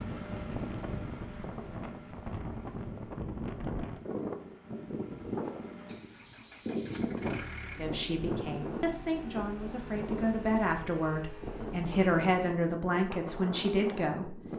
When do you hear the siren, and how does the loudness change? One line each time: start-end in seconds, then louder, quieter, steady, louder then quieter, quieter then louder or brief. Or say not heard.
not heard.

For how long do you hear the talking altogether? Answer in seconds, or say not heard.
7 s.